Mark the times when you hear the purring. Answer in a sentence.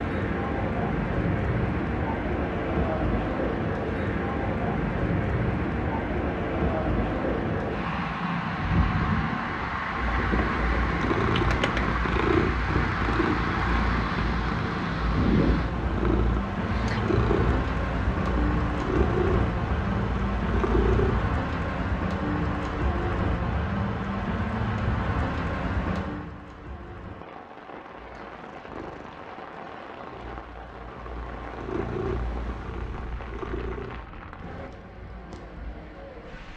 The purring can be heard from 9.9 to 21.3 s and from 27.9 to 34.1 s.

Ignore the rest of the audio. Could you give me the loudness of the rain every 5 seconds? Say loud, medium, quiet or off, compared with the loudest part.
loud, loud, loud, loud, loud, medium, quiet, quiet.